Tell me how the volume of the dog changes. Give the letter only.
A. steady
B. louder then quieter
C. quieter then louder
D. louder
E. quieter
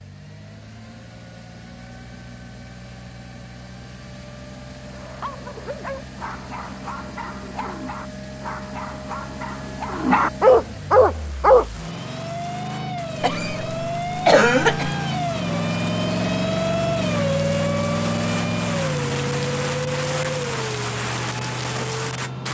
D.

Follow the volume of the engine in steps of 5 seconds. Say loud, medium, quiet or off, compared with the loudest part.
quiet, quiet, medium, loud, medium.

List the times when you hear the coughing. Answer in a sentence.
You can hear the coughing from 13.2 to 14.9 s.